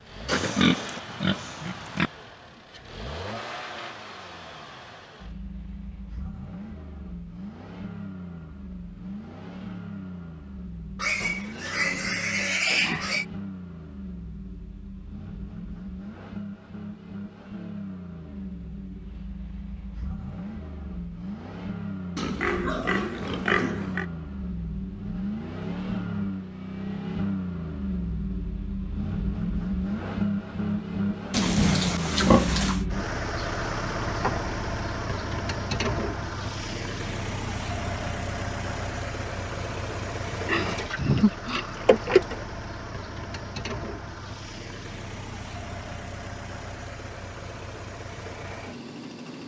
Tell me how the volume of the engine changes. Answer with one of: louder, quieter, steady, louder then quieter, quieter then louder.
louder then quieter.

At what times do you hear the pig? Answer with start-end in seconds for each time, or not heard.
0.2-2.1, 10.9-13.2, 22.1-24.1, 31.3-32.8, 40.5-42.5.